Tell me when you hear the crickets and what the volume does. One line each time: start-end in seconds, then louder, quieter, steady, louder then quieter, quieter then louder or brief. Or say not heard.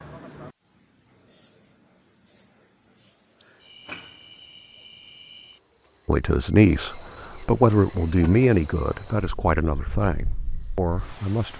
0.0-11.5 louder then quieter.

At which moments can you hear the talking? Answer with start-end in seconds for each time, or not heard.
6.0-11.5.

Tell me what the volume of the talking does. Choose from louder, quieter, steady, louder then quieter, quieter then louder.
quieter.